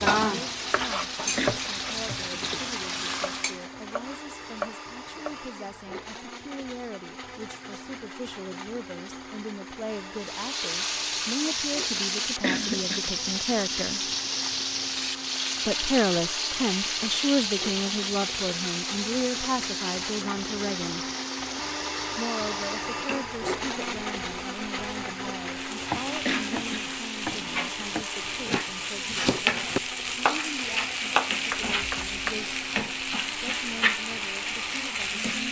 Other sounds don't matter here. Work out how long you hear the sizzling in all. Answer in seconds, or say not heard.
29 s.